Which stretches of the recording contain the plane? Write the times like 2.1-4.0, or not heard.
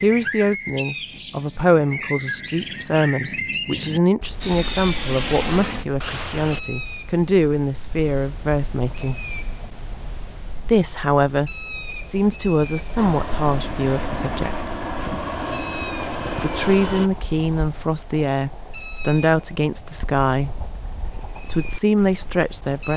4.4-6.6, 12.9-17.1.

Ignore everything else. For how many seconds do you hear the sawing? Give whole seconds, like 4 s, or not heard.
not heard.